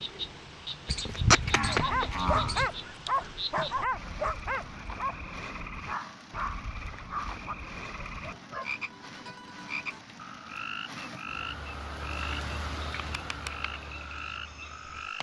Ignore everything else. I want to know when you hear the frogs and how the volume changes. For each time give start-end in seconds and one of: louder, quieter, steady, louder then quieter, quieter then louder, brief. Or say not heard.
0.0-15.1 steady.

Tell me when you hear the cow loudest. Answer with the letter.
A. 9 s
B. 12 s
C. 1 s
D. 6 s
C.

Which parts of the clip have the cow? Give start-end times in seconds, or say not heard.
0.8-2.7.